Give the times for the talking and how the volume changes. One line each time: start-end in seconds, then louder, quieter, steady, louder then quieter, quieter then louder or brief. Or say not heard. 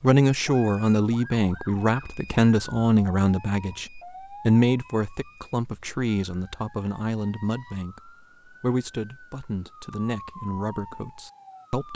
0.0-11.9 quieter.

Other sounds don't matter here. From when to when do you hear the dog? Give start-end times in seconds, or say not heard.
not heard.